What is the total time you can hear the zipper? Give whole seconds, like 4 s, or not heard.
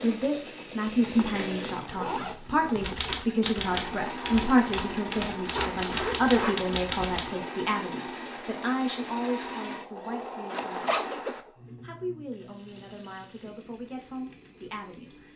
4 s.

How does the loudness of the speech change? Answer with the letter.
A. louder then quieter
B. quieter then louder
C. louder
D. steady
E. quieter
E.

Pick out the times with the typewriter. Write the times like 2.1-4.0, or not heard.
2.8-7.2.